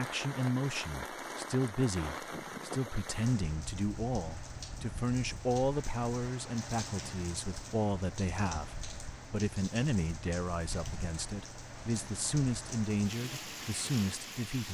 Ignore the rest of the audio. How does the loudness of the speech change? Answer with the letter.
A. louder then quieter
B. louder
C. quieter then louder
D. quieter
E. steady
E.